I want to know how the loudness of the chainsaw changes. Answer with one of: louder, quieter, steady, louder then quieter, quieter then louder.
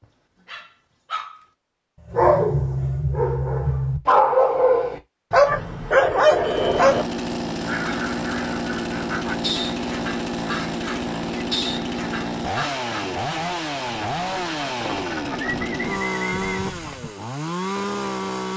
steady.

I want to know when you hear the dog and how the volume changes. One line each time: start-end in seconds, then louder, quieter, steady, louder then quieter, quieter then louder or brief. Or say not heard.
0.0-7.0 louder.